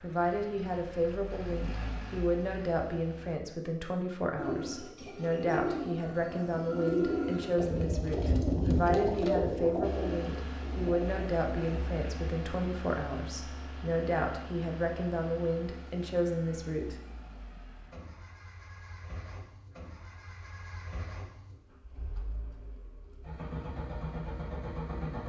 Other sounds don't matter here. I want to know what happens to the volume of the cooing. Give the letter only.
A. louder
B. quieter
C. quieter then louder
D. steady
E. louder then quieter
E.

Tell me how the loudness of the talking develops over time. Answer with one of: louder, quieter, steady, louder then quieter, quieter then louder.
steady.